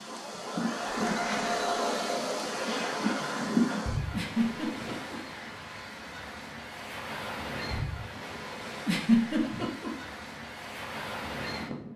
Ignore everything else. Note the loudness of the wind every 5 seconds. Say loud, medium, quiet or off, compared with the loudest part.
loud, medium, medium.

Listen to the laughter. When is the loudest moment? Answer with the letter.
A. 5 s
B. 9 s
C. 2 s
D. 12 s
B.